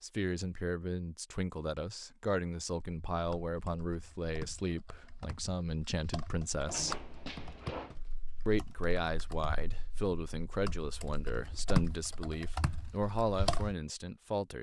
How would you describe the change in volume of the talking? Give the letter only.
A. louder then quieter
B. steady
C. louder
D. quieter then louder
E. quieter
B.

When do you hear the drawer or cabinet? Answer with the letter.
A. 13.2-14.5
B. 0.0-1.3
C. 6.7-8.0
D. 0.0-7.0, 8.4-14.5
C.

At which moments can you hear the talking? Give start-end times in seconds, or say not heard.
0.0-7.0, 8.4-14.5.